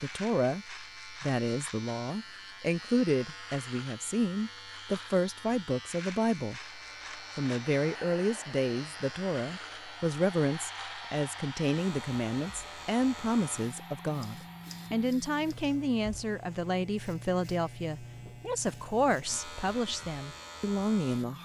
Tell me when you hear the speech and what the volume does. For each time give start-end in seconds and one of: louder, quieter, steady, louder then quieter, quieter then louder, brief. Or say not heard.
0.0-21.3 steady.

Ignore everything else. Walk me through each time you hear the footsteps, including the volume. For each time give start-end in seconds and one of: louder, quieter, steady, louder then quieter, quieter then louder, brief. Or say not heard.
not heard.